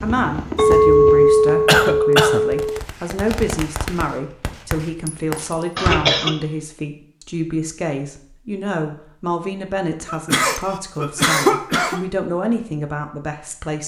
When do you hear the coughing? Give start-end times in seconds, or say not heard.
1.6-2.4, 5.8-6.3, 10.1-12.0.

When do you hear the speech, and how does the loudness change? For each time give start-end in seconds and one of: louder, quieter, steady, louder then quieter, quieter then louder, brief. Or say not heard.
0.0-13.8 steady.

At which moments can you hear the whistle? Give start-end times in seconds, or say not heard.
not heard.